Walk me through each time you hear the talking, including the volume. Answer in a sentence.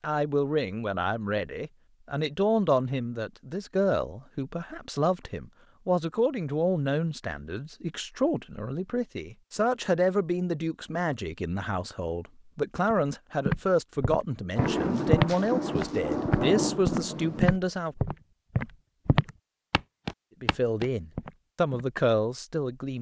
The talking can be heard from 0.0 to 17.9 s, at a steady volume; and briefly from 20.4 to 22.9 s.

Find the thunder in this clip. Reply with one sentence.
The thunder can be heard from 14.6 to 17.6 s.